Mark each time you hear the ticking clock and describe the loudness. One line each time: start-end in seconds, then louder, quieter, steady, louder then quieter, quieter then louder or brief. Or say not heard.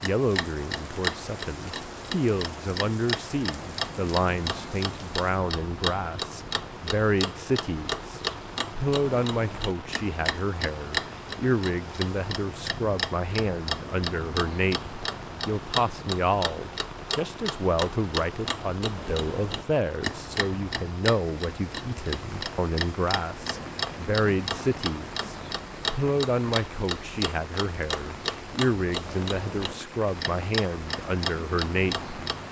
0.0-32.4 steady.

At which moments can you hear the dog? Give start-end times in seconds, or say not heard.
not heard.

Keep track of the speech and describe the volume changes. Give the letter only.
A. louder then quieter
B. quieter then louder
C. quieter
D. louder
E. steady
E.